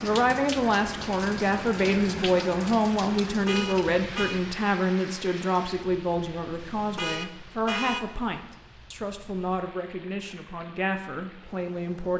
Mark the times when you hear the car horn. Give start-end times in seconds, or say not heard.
3.2-4.4, 6.5-8.1.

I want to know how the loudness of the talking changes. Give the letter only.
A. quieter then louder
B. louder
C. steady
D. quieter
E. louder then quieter
D.